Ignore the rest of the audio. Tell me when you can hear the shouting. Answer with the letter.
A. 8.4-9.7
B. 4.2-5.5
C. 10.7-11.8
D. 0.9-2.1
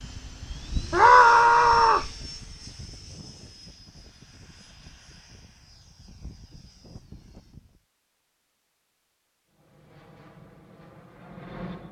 D.